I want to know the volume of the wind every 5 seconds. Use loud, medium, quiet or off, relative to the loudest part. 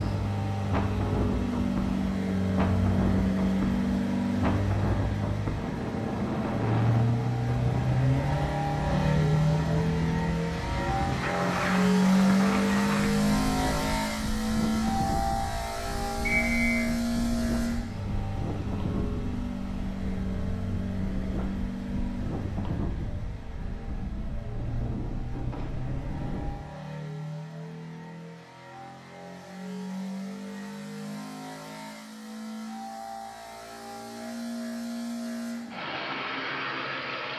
loud, loud, loud, medium, medium, medium, off, off.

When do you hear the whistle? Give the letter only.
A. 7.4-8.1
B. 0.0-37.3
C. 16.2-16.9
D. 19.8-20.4
C.